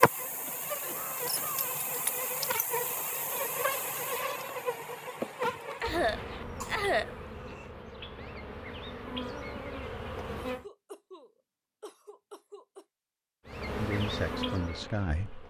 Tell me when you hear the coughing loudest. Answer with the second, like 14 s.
7 s.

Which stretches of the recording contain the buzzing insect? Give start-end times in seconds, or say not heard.
0.0-10.7, 13.4-15.4.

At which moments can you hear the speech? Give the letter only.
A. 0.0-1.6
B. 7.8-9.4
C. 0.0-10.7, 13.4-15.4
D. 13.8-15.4
D.